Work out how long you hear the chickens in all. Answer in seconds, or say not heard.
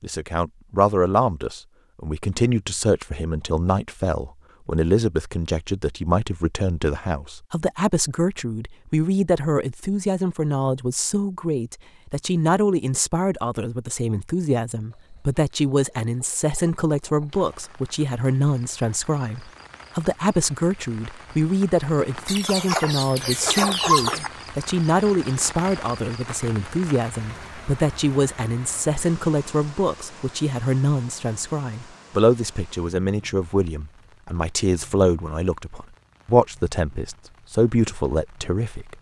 5 s.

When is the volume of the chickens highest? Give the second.
24 s.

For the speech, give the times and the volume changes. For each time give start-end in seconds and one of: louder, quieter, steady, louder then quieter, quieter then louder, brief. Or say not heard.
0.0-38.9 steady.